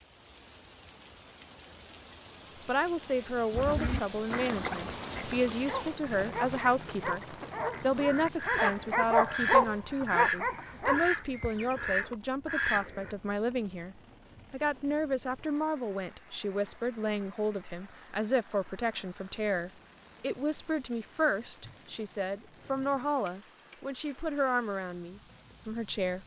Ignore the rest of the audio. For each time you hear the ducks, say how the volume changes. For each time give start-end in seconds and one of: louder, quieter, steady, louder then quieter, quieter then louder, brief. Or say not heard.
3.5-13.2 quieter then louder.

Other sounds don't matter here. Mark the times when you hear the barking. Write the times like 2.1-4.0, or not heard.
5.7-11.1.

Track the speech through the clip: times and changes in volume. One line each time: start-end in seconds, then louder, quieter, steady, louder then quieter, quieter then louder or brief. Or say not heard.
2.6-26.2 steady.